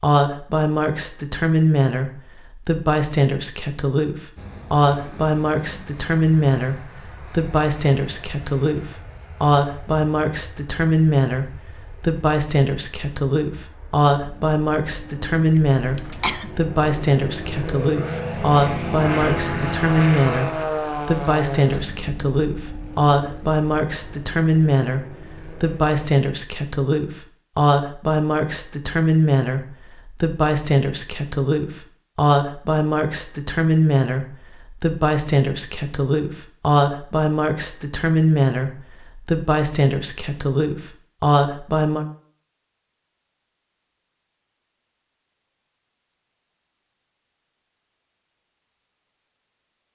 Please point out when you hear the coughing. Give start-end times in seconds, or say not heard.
15.6-16.5.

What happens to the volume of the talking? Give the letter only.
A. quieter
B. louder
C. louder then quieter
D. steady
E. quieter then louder
D.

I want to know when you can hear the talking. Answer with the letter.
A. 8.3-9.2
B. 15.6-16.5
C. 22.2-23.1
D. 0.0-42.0
D.